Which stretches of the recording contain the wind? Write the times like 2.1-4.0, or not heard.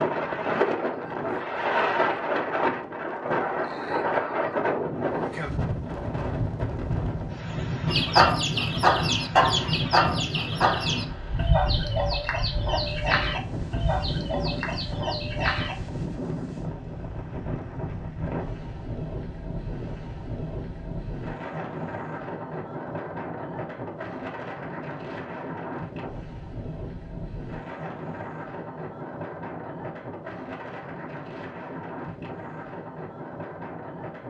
0.0-34.2.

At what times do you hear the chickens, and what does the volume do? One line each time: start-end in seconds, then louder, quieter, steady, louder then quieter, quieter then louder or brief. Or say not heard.
7.8-15.8 quieter.